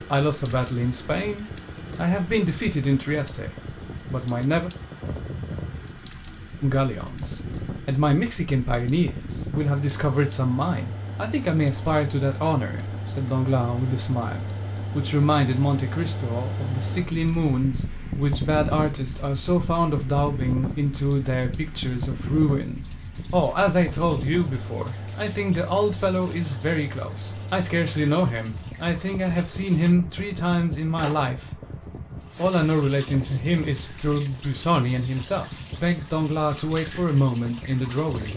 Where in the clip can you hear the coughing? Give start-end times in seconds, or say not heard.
not heard.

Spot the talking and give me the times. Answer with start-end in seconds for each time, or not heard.
0.0-4.7, 6.6-31.6, 32.4-38.3.